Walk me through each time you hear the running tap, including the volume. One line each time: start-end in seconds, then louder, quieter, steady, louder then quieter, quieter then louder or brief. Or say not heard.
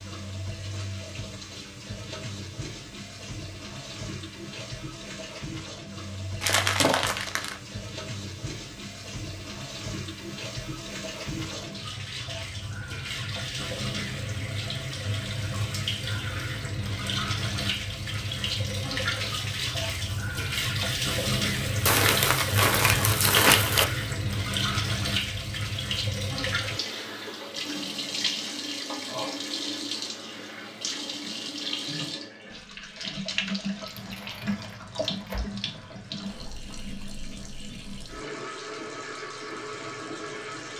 0.0-40.7 louder then quieter.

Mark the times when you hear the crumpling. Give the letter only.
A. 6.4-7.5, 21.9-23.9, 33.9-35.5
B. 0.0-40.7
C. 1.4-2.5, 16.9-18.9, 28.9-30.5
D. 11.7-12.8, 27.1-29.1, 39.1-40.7
A.